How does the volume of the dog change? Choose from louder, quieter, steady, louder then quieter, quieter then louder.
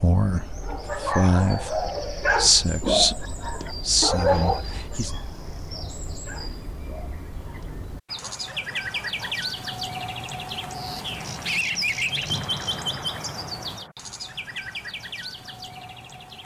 quieter.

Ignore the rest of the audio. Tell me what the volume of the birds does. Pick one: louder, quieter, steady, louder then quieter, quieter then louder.
louder then quieter.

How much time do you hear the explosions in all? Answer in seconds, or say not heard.
2 s.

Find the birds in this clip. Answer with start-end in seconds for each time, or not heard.
0.0-16.4.